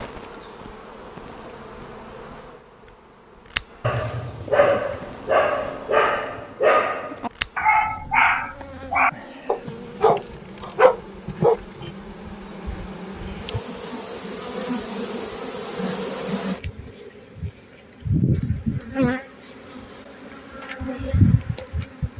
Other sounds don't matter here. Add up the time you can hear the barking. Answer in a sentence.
You can hear the barking for 8 seconds altogether.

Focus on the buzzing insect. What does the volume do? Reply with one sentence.
The volume of the buzzing insect goes up.